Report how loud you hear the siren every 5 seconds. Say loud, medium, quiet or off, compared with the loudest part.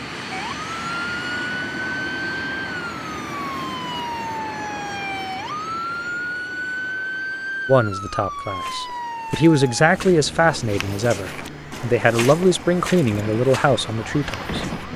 loud, loud, medium.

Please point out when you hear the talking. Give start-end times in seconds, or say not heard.
7.7-14.7.